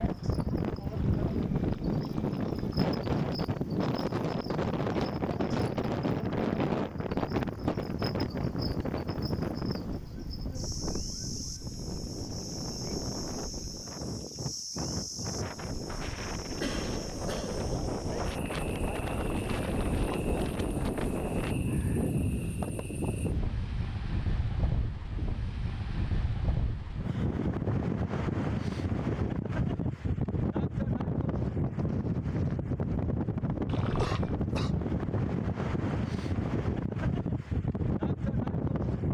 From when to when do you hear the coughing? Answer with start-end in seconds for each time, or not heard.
16.6-17.7, 33.4-34.8.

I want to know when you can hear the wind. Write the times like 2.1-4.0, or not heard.
0.0-39.0.